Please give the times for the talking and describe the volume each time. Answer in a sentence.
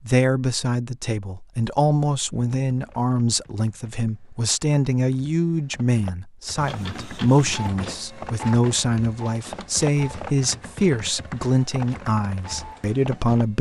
You can hear the talking from 0.1 to 13.5 s, at a steady volume.